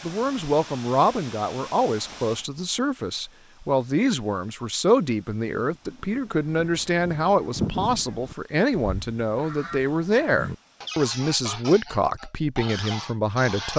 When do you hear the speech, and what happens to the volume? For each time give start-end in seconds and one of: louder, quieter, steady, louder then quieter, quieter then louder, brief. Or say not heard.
0.0-13.7 steady.